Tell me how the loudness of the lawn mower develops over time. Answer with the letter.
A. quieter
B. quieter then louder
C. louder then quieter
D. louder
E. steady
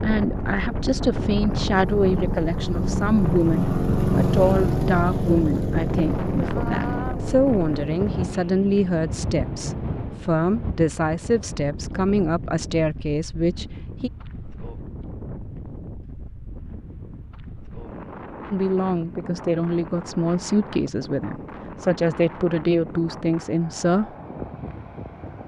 C.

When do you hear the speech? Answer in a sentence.
The speech can be heard from 0.0 to 14.1 s and from 18.5 to 24.1 s.